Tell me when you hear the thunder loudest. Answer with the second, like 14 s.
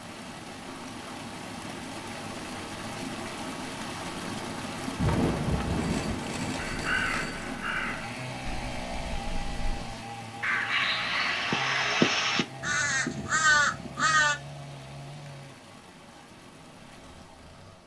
5 s.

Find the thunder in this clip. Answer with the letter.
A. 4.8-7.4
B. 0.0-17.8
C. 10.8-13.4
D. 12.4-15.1
A.